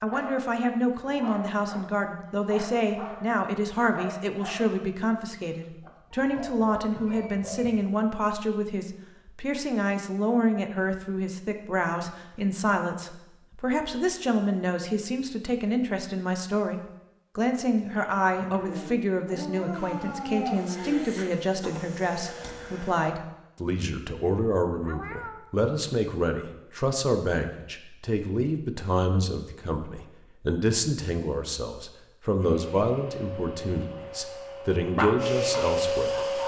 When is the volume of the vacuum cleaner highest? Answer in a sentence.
The loudest moment of the vacuum cleaner is at 36 seconds.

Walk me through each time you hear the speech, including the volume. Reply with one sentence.
The speech can be heard from 0.0 to 36.4 s, at a steady volume.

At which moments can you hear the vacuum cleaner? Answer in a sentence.
The vacuum cleaner can be heard from 19.7 to 23.1 s and from 32.4 to 36.4 s.